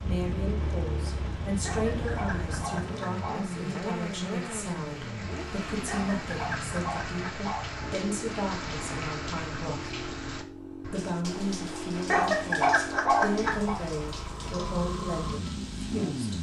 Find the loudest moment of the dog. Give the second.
13 s.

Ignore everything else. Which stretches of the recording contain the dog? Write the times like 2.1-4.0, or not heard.
1.6-3.5, 5.8-7.7, 12.1-13.8.